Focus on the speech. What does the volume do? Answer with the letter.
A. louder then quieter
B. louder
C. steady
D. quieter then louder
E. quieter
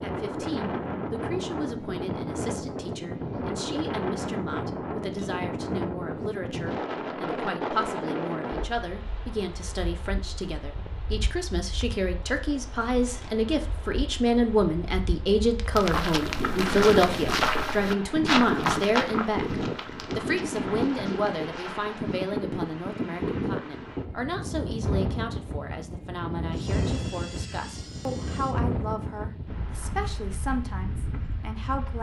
A.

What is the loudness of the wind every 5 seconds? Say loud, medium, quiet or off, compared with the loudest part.
loud, loud, quiet, loud, loud, loud, medium.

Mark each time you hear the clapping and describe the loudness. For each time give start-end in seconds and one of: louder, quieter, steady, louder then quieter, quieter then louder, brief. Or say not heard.
not heard.